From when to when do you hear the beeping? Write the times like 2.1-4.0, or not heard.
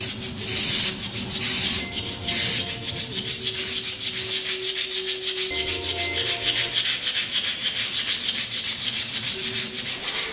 1.8-3.0, 5.5-6.7.